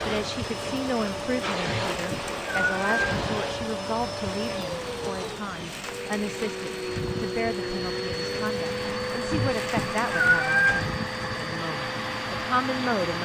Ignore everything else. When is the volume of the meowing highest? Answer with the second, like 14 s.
10 s.